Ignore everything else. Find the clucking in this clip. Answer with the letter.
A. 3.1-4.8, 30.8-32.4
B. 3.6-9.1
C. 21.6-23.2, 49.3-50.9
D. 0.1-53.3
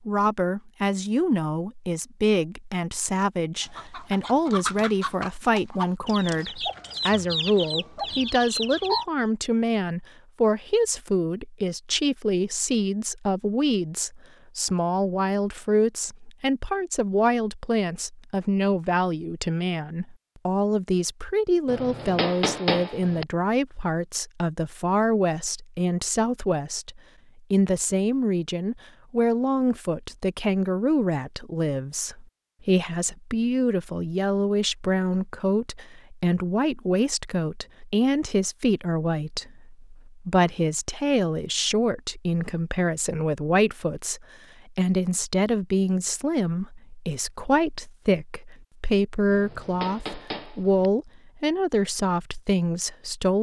B.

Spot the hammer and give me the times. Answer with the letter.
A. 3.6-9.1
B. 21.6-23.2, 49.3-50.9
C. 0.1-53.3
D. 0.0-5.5
B.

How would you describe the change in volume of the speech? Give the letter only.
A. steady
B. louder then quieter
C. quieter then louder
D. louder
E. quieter
A.